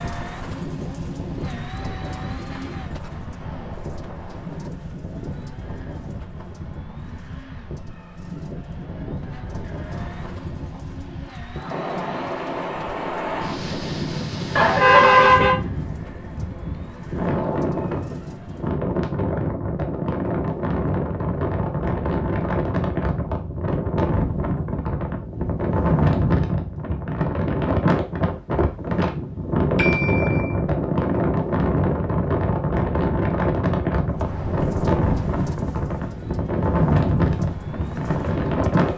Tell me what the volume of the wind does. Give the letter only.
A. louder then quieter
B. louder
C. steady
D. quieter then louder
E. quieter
B.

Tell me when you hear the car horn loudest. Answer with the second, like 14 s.
15 s.